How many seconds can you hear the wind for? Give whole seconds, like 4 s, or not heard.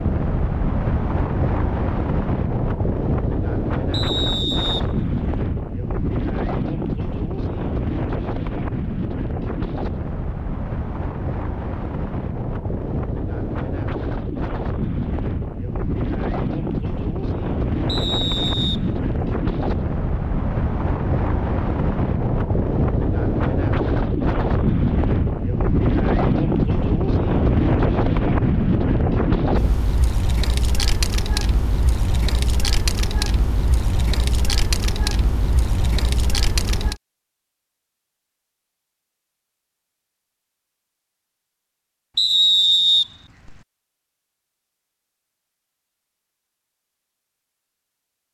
37 s.